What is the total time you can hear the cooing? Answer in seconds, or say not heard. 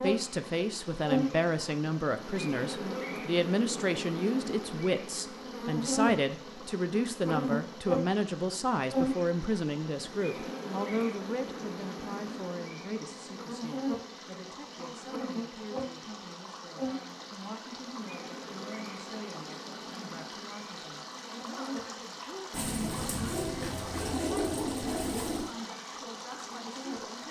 3 s.